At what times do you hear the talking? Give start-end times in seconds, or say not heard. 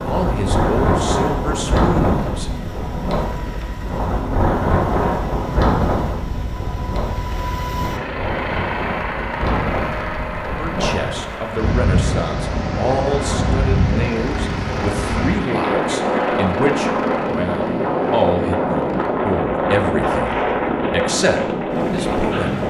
0.0-2.5, 10.4-22.6.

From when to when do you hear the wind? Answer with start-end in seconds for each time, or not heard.
0.0-22.6.